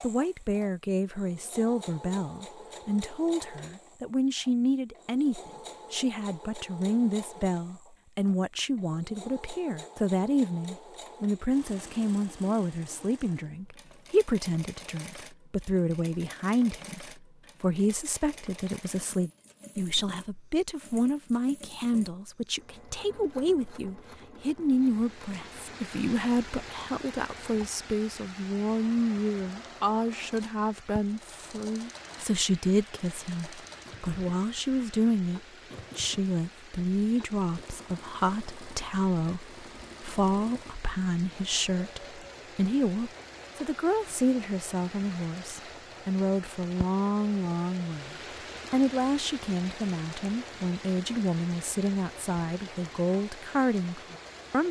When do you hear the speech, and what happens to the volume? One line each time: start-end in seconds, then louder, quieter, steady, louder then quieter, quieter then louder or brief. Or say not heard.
0.0-54.6 steady.